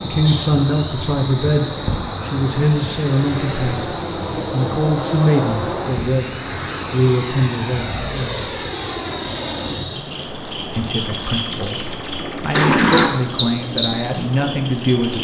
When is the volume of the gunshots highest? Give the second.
13 s.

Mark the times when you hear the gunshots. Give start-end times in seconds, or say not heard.
11.3-13.1.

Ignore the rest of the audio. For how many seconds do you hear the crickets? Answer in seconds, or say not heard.
15 s.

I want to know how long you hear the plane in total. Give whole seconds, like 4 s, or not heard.
15 s.